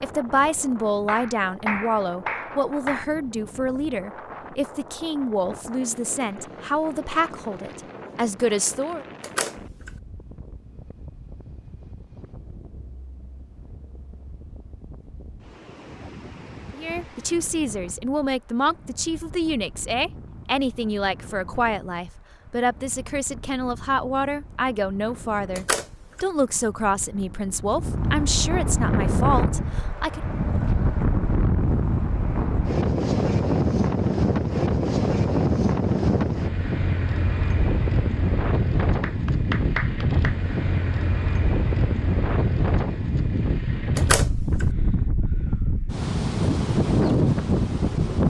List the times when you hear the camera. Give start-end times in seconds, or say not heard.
9.2-9.9, 25.6-26.2, 44.0-44.6.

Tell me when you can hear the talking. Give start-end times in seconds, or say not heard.
0.0-9.1, 16.8-30.2.